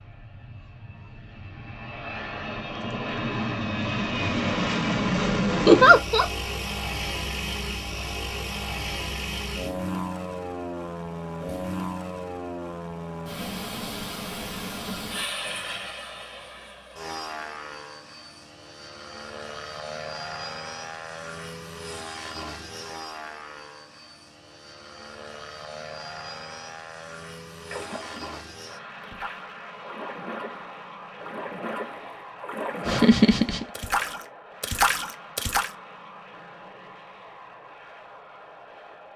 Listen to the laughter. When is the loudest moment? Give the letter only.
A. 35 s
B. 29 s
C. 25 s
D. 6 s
D.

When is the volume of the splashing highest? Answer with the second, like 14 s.
35 s.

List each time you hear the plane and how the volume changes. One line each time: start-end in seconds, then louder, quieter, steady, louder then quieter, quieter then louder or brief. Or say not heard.
0.0-39.1 quieter.